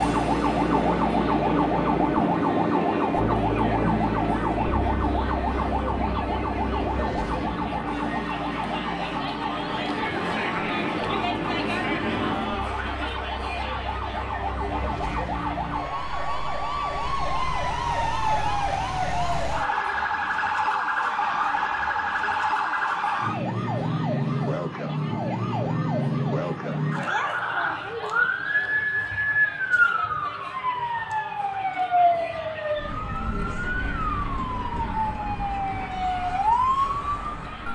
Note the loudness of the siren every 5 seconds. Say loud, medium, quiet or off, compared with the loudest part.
loud, medium, medium, loud, loud, loud, loud, loud.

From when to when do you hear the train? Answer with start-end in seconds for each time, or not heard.
0.0-12.7.